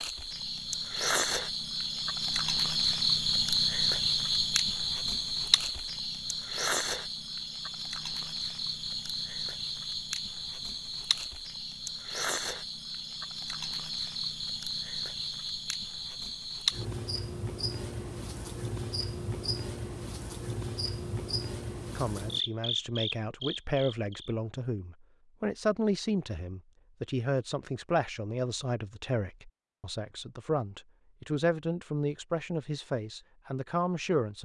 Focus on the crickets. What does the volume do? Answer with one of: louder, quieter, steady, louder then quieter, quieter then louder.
quieter.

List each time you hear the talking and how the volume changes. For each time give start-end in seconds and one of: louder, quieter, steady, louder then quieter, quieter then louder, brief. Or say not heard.
21.9-34.3 steady.